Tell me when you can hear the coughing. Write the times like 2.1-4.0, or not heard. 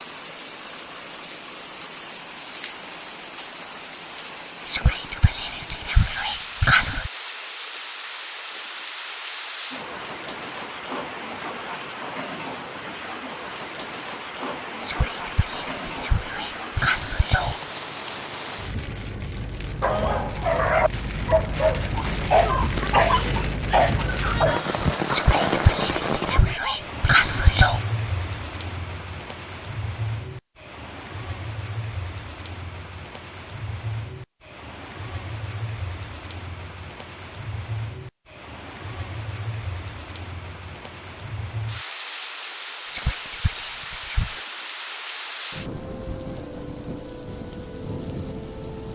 not heard.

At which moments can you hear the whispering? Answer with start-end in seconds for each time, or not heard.
4.7-7.1, 14.8-17.6, 25.1-27.8, 42.9-44.5.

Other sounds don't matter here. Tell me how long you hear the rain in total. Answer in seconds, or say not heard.
49 s.